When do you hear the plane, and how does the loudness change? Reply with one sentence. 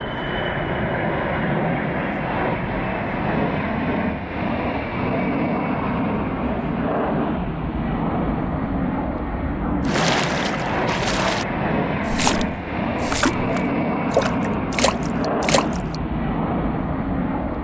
The plane can be heard from 0.0 to 17.5 s, at a steady volume.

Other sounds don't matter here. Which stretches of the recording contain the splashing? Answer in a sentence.
You can hear the splashing from 9.8 to 15.9 s.